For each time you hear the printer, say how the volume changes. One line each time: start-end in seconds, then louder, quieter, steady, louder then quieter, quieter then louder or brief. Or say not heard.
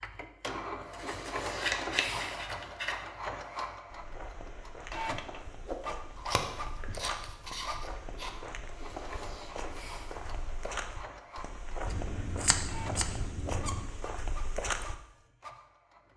0.0-16.1 quieter.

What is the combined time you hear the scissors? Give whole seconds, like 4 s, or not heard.
6 s.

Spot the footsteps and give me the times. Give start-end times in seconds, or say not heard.
3.9-14.9.